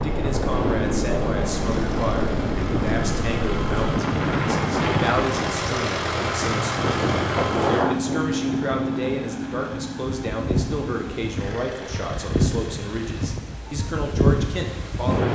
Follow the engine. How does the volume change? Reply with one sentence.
The volume of the engine goes up, then down.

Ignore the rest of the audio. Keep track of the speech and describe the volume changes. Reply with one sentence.
The volume of the speech stays about the same.